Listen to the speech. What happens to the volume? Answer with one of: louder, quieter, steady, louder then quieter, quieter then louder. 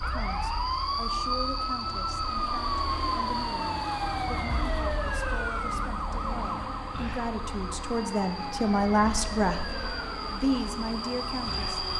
louder.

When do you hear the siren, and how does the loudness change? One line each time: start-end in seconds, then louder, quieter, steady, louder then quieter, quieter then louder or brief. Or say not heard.
0.0-11.9 quieter.